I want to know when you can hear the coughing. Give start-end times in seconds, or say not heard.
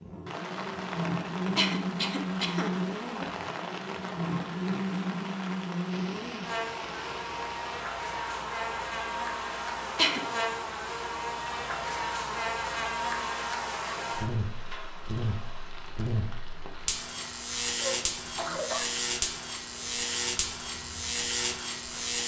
1.6-3.2, 9.9-10.4, 17.8-18.9.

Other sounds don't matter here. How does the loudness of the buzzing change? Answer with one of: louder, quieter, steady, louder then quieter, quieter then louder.
steady.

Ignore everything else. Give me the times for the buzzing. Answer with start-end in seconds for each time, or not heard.
0.0-22.2.